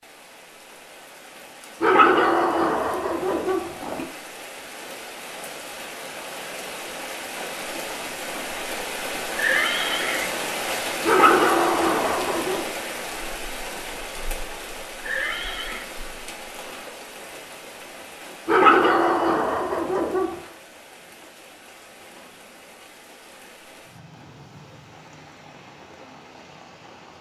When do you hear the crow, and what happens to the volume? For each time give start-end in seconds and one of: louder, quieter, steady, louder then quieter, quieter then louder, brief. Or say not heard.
not heard.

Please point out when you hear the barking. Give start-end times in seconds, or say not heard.
1.8-4.0, 11.1-12.7, 18.4-20.4.